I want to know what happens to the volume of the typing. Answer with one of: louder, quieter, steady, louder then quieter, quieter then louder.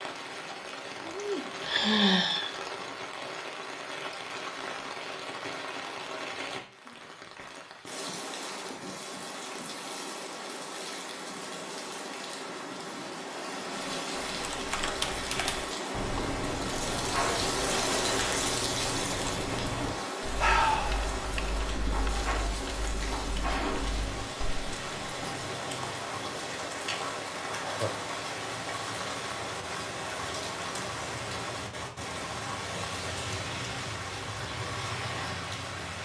quieter.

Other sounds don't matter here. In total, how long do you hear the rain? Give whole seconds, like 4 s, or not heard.
36 s.